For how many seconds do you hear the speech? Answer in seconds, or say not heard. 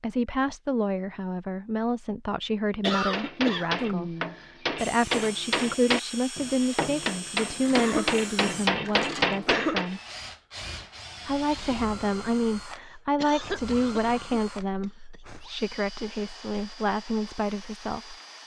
17 s.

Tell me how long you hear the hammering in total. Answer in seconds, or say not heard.
7 s.